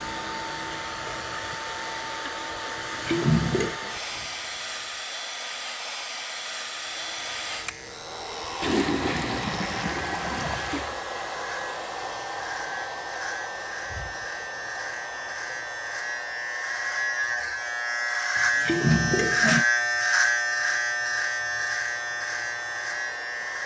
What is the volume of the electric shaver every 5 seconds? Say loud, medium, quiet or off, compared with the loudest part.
quiet, quiet, medium, loud, loud.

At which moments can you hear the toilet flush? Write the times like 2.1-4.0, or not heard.
2.8-3.8, 8.6-10.9, 18.4-19.6.